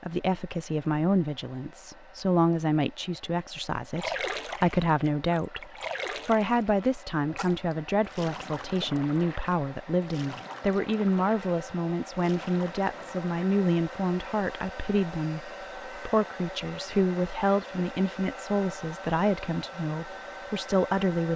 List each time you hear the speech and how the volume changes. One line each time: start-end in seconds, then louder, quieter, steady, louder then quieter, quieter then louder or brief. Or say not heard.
0.0-21.3 steady.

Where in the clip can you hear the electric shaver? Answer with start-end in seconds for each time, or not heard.
not heard.